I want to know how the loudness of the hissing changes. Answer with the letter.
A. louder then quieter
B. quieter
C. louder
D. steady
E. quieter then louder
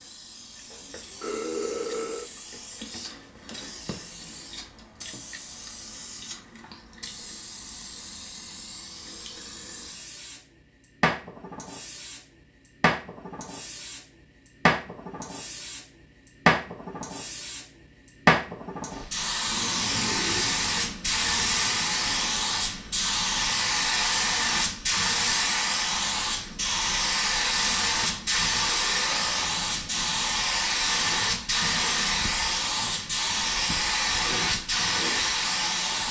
C.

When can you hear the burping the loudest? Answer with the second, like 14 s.
2 s.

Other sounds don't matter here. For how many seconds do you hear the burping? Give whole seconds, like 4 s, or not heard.
3 s.